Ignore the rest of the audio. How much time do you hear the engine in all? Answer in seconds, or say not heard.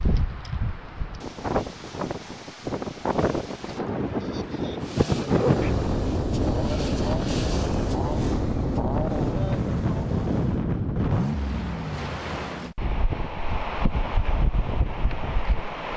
6 s.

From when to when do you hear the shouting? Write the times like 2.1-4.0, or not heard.
not heard.